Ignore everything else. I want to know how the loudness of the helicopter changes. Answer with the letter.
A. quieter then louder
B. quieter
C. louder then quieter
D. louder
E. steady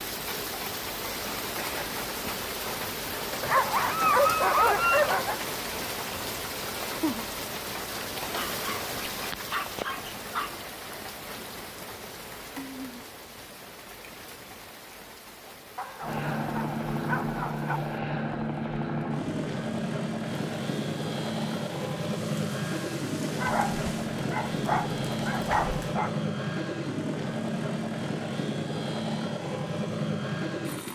E.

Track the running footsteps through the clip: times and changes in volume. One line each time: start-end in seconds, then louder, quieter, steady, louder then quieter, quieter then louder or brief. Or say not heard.
not heard.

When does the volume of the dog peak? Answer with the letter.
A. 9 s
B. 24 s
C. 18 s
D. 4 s
D.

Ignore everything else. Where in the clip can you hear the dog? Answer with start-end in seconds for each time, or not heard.
3.4-5.3, 8.2-10.7, 15.8-17.8, 23.4-26.1.